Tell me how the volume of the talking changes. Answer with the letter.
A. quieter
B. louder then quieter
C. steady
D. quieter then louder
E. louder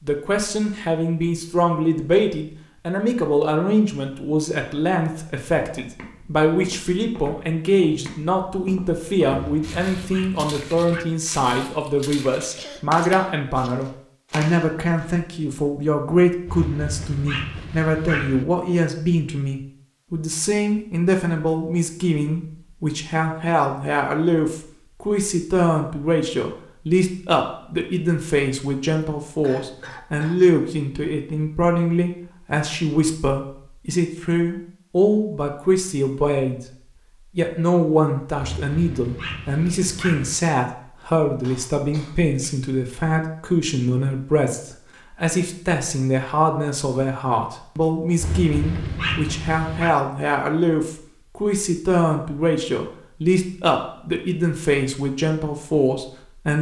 C.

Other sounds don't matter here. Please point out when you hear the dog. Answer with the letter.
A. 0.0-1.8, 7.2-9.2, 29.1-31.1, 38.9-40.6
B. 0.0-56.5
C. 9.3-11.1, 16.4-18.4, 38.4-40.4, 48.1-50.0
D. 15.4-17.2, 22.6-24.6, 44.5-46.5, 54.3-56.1
C.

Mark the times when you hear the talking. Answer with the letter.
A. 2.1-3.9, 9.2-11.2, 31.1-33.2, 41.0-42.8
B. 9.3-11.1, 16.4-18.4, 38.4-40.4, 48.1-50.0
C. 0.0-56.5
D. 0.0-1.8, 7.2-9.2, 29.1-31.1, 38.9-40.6
C.